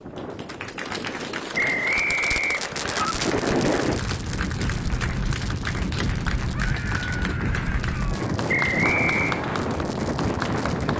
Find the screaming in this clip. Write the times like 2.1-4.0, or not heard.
6.5-8.3.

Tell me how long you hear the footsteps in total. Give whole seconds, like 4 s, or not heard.
not heard.